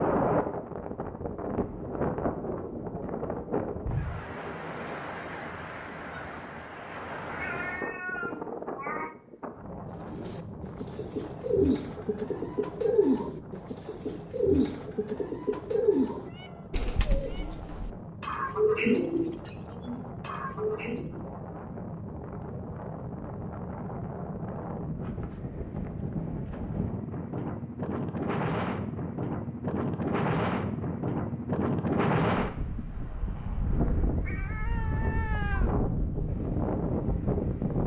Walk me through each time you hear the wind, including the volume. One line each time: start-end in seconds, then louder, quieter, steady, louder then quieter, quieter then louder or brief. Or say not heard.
0.0-37.8 quieter then louder.